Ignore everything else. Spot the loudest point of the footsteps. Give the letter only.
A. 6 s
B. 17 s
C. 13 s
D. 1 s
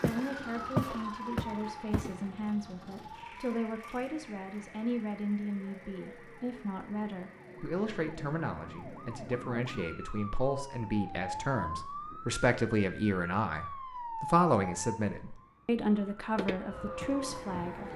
D.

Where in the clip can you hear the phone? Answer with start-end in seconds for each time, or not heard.
not heard.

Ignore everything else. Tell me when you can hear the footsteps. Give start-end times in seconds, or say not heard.
0.0-2.1, 16.4-17.8.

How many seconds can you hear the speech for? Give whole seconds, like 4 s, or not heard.
18 s.